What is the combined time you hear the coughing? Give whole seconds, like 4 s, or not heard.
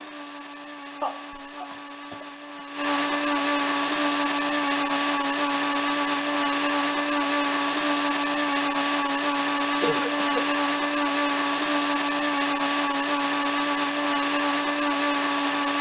2 s.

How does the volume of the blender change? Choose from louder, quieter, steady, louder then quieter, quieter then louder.
louder.